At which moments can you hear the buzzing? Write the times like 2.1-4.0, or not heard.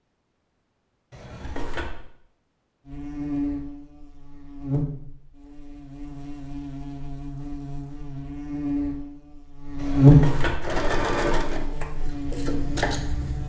2.9-13.4.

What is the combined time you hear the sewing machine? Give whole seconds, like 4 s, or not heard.
3 s.